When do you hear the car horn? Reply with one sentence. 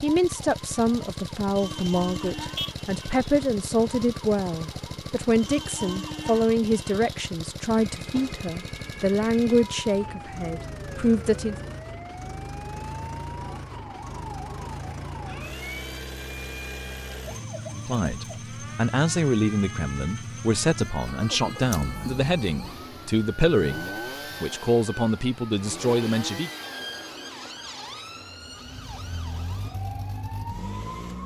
The car horn can be heard from 1.8 to 2.8 s.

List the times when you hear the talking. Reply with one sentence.
The talking can be heard from 0.0 to 11.6 s and from 17.8 to 26.5 s.